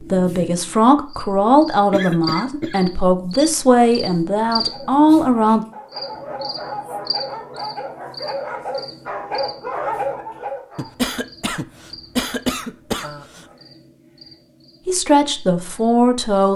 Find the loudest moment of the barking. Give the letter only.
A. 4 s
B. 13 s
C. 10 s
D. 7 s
C.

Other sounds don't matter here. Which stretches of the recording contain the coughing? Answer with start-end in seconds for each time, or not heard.
1.9-2.8, 10.8-13.4.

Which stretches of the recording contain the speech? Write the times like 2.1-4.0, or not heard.
0.0-5.7, 14.8-16.5.